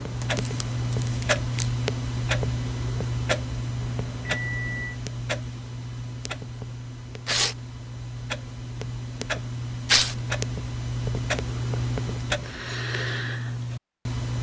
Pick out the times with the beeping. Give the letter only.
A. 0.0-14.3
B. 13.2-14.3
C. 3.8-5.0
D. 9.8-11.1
C.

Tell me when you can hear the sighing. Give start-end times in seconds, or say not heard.
not heard.